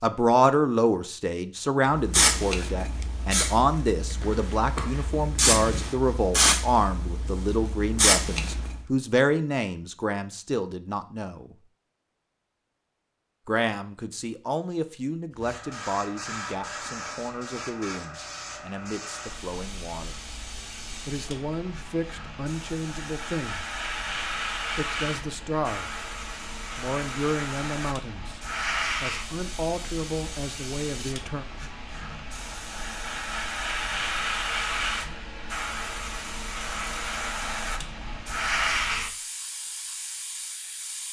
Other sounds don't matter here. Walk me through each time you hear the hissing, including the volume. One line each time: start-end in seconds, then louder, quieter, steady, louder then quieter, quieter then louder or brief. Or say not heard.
1.9-8.9 quieter then louder
15.3-41.0 louder.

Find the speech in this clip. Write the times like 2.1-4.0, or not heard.
0.0-11.6, 13.4-20.2, 21.1-23.6, 24.8-26.0, 26.8-31.4.